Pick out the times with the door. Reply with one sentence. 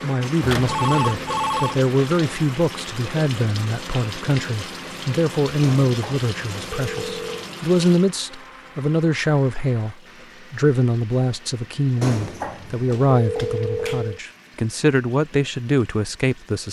The door can't be heard in this clip.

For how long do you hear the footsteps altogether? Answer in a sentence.
You can't hear the footsteps here.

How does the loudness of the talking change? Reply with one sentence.
The volume of the talking stays about the same.